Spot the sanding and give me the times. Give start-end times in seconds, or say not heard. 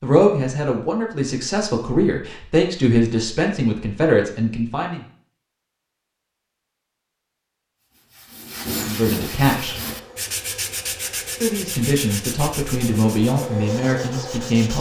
7.8-14.7.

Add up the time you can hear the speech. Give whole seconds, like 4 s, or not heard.
9 s.